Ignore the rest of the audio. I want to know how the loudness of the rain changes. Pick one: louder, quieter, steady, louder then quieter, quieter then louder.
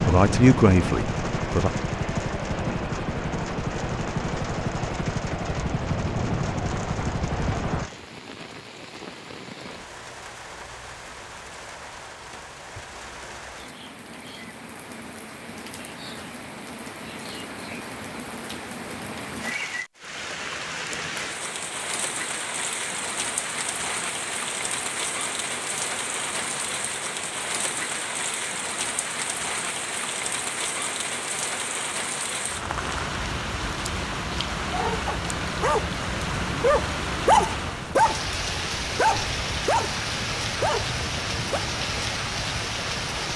louder.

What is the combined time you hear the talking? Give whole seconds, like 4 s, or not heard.
2 s.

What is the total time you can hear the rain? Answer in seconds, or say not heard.
43 s.